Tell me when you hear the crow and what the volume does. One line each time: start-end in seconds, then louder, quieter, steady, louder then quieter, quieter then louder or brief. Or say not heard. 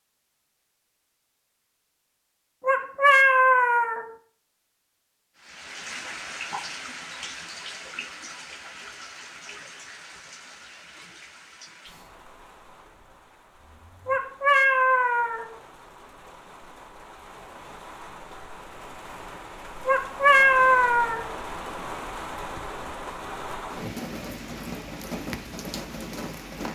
not heard.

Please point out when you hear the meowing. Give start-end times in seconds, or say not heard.
2.6-4.1, 14.1-15.5, 19.9-21.3.